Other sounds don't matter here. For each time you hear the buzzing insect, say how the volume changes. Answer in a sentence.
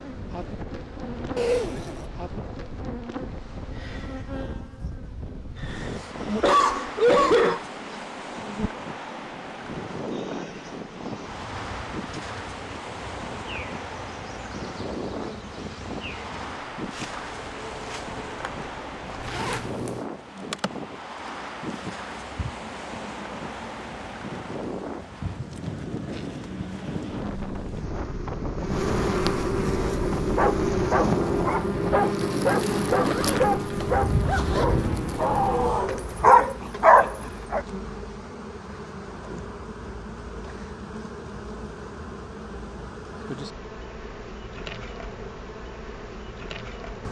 You can hear the buzzing insect from 0.0 to 47.0 s, getting louder then quieter.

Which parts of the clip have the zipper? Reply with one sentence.
The zipper can be heard from 1.4 to 2.1 s, from 19.2 to 20.1 s and from 33.0 to 34.6 s.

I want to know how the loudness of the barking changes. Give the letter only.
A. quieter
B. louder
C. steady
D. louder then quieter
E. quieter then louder
B.